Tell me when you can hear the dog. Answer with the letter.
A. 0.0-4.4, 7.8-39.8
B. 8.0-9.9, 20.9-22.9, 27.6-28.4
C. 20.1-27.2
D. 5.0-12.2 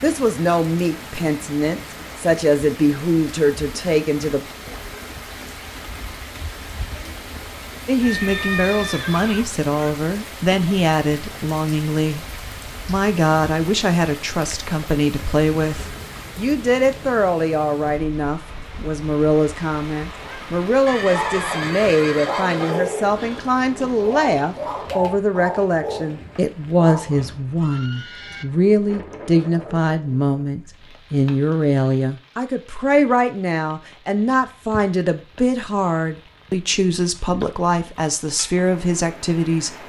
C.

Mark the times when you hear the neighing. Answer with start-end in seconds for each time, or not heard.
8.0-9.9, 20.9-22.9, 27.6-28.4.